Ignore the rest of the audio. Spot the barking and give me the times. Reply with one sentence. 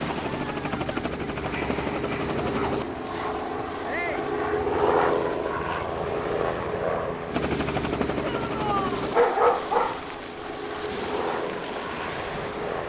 The barking can be heard from 1.4 to 3.4 s and from 9.1 to 10.4 s.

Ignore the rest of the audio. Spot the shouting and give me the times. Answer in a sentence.
The shouting can be heard from 3.9 to 4.3 s and from 8.2 to 9.1 s.